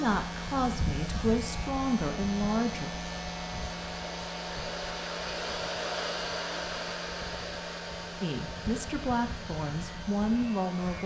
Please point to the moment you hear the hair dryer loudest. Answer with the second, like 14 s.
6 s.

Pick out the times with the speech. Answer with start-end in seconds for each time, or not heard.
0.0-2.9, 8.2-11.0.